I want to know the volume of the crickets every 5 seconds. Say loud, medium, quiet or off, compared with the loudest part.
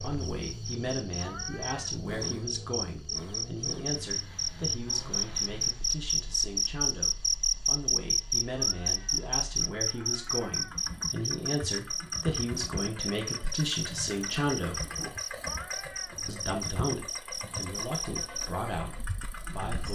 medium, loud, medium, medium.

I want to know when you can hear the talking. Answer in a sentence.
You can hear the talking from 0.0 to 14.9 s and from 16.2 to 19.9 s.